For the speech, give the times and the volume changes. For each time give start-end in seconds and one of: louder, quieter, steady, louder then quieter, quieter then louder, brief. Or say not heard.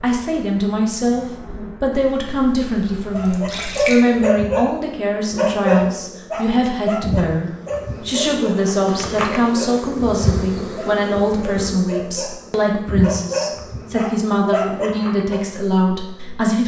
0.0-16.6 steady.